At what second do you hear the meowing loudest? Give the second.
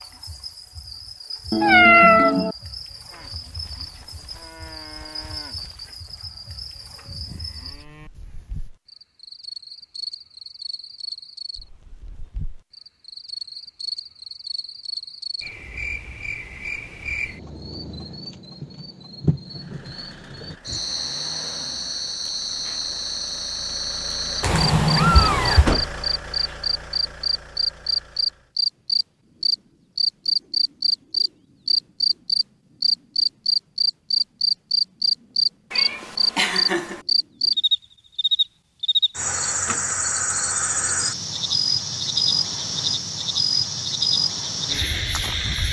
2 s.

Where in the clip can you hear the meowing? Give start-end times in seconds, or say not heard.
1.5-2.5, 24.4-25.7, 35.7-37.0.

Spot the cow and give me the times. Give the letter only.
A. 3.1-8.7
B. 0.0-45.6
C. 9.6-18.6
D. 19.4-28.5
A.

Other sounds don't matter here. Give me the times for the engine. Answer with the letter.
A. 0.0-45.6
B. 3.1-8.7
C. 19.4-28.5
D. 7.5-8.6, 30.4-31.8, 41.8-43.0
C.